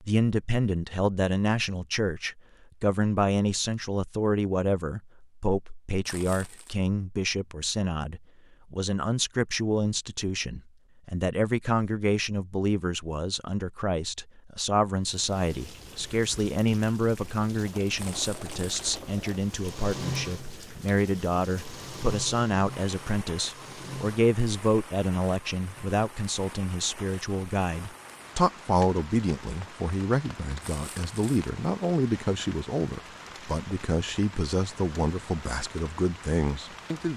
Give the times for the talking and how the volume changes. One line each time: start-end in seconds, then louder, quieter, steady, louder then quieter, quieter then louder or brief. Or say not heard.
0.0-37.1 steady.